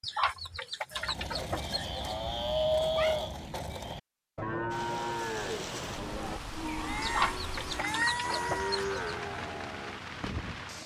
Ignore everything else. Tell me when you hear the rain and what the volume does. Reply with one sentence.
You can hear the rain from 4.7 to 10.8 s, at a steady volume.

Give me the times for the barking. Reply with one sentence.
You can't hear the barking here.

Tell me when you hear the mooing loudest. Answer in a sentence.
The volume of the mooing peaks at 3 seconds.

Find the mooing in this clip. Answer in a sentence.
You can hear the mooing from 0.9 to 10.6 s.